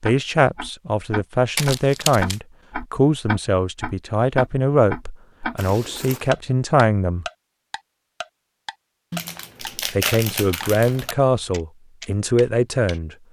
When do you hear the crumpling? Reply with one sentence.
The crumpling can be heard from 1.6 to 2.4 s, from 5.5 to 6.3 s and from 9.1 to 11.2 s.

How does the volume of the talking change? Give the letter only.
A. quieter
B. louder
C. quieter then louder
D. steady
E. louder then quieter
D.